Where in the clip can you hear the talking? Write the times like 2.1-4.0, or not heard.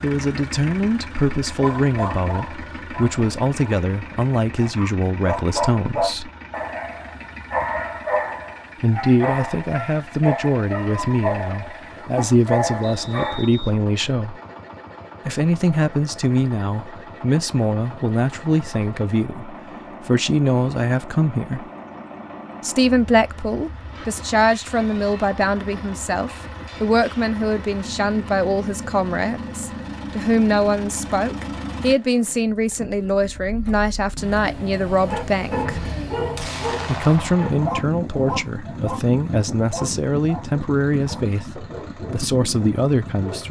0.0-6.3, 8.8-14.4, 15.2-21.7, 22.6-35.8, 36.9-43.4.